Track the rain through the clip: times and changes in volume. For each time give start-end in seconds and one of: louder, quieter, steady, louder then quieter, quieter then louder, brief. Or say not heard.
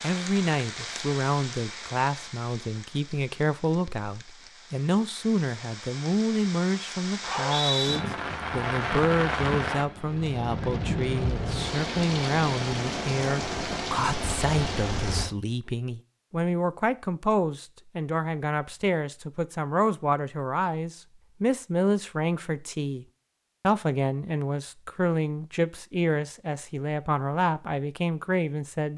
0.0-15.3 quieter then louder.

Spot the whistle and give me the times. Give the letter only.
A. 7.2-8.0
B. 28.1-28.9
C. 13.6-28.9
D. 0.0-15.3
A.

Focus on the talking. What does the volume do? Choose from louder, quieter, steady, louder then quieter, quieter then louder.
steady.